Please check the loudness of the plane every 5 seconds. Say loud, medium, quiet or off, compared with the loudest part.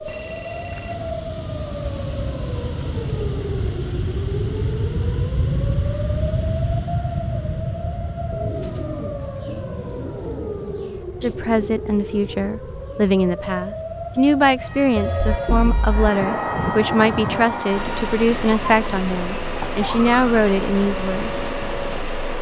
loud, loud, quiet, loud, loud.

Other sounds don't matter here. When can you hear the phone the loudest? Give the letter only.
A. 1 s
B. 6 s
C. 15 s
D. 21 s
C.